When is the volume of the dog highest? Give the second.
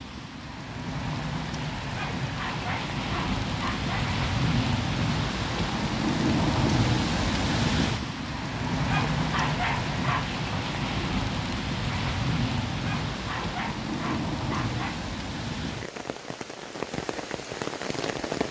10 s.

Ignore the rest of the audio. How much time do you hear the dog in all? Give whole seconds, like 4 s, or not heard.
6 s.